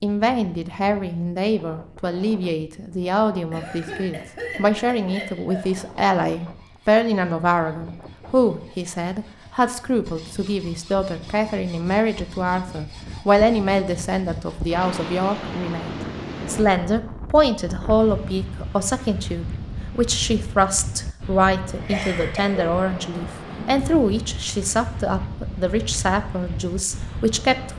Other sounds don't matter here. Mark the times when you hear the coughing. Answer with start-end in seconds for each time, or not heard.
3.5-5.7, 21.6-22.7.